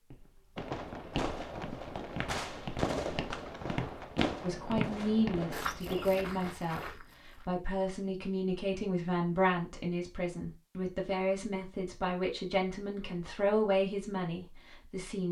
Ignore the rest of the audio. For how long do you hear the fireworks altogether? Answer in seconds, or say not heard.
6 s.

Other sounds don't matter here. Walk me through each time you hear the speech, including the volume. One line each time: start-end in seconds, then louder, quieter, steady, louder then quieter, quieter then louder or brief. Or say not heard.
4.4-15.2 steady.